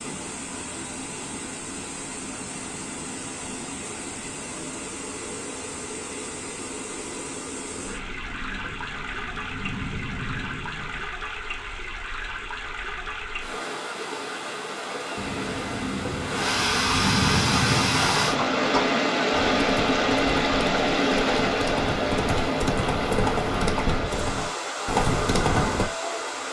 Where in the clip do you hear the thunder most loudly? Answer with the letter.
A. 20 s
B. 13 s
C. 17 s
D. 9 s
C.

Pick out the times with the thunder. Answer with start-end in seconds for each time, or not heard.
7.8-11.1, 15.2-18.5.